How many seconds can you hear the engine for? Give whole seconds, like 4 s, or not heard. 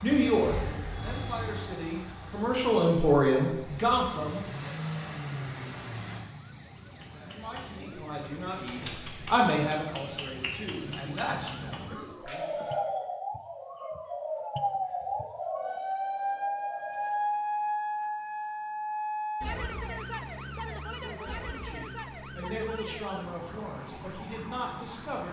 6 s.